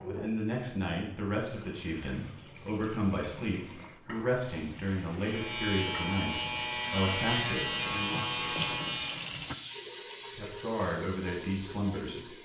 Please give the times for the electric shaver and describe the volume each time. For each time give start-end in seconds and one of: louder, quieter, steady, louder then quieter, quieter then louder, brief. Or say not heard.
5.2-9.3 steady.